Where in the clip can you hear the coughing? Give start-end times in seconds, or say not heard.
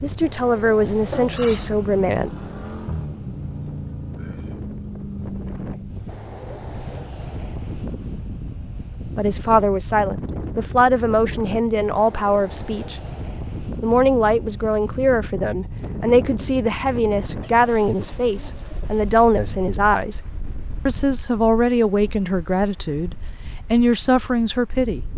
1.1-1.8.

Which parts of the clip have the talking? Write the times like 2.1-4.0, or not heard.
0.0-2.3, 9.2-13.0, 13.8-20.2, 20.9-25.1.